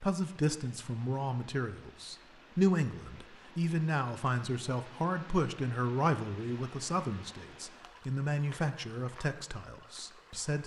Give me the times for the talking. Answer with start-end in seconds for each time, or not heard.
0.0-10.6.